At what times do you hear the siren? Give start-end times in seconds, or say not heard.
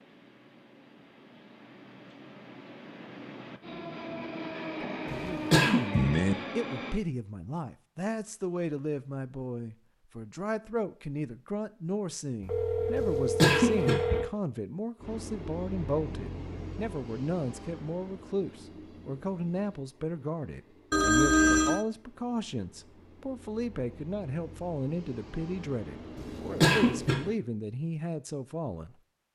not heard.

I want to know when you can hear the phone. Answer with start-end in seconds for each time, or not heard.
5.9-6.3, 12.4-14.3, 20.9-21.9.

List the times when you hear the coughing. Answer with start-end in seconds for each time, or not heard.
5.0-5.8, 12.9-13.9, 26.1-27.1.